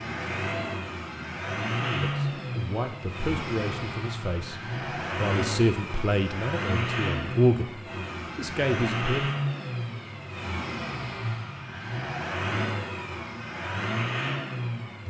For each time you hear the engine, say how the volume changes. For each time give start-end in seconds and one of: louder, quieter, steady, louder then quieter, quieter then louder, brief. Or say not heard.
0.0-15.0 steady.